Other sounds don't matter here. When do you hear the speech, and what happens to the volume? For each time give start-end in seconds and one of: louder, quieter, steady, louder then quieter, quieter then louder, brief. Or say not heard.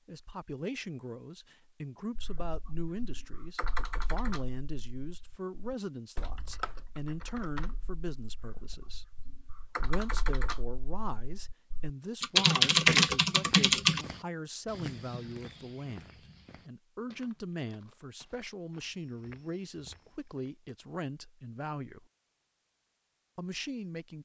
0.1-22.1 steady
23.4-24.2 brief.